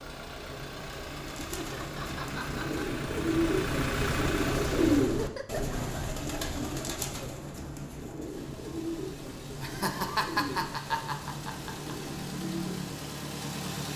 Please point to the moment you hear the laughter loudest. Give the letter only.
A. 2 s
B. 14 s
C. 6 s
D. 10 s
D.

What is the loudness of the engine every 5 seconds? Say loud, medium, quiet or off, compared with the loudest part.
loud, medium, loud.